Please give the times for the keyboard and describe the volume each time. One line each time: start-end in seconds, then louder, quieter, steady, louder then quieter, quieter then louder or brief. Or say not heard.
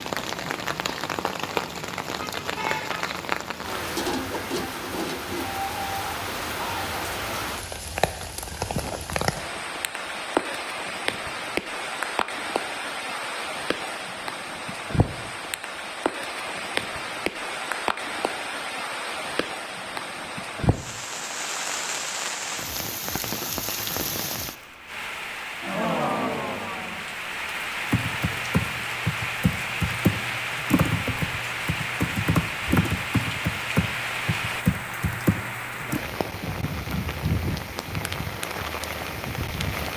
27.9-36.0 steady.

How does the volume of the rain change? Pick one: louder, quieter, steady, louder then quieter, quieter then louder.
steady.